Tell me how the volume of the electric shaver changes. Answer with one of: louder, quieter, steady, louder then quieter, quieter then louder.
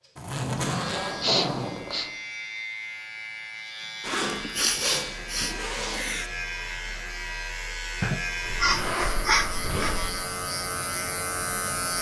louder.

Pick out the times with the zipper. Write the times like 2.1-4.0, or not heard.
0.1-2.1, 4.0-6.0, 8.4-10.1.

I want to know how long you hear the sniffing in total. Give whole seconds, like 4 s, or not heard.
5 s.